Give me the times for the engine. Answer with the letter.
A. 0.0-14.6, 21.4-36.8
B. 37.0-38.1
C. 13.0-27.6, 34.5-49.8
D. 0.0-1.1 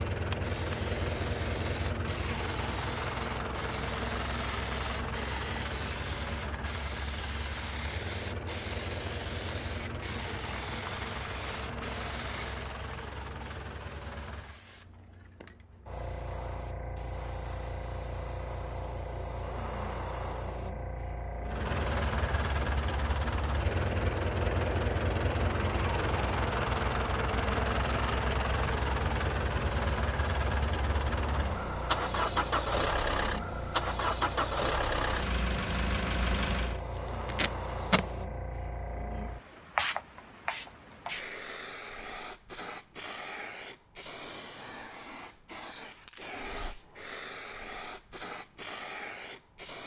A.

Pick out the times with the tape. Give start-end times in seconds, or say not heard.
37.0-38.1.